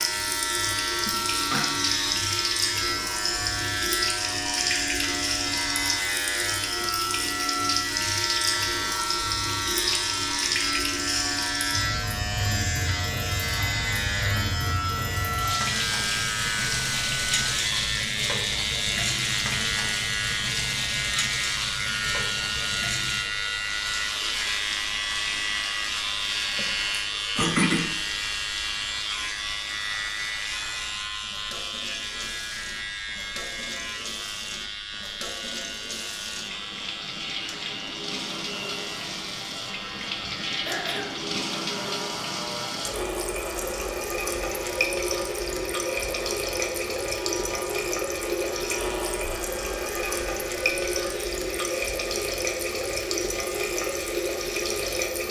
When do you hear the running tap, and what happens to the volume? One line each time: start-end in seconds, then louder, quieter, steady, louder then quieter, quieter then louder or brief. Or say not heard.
0.0-55.2 quieter then louder.